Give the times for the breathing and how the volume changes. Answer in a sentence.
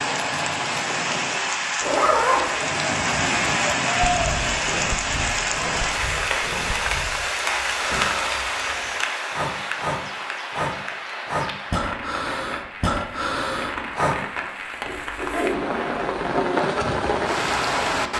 The breathing can be heard from 4.0 to 14.2 s, getting louder.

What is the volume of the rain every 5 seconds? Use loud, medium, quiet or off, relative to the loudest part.
loud, loud, medium, loud.